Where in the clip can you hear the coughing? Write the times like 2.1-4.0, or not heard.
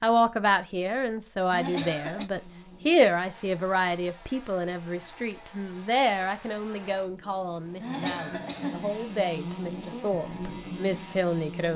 1.5-2.3, 7.8-8.9.